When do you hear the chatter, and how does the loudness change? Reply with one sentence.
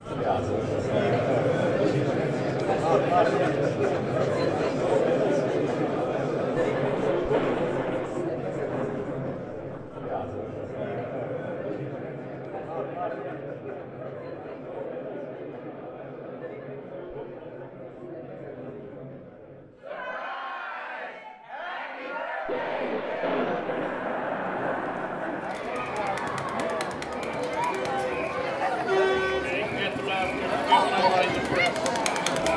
The chatter can be heard from 0.0 to 32.5 s, getting quieter then louder.